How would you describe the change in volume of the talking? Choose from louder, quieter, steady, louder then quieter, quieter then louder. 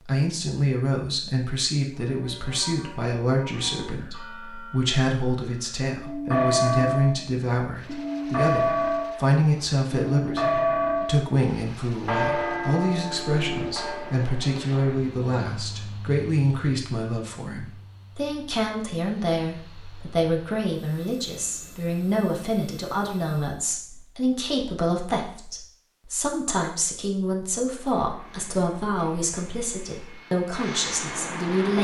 steady.